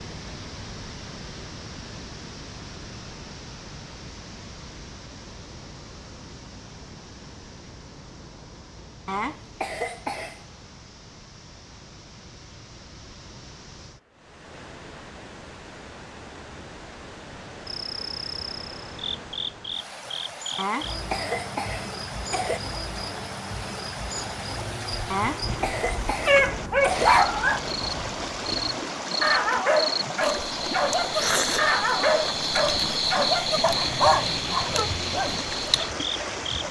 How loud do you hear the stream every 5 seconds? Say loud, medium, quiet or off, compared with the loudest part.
medium, quiet, quiet, medium, medium, loud, loud, loud.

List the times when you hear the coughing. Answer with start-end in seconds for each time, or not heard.
9.1-10.4, 20.6-22.6, 25.1-27.1.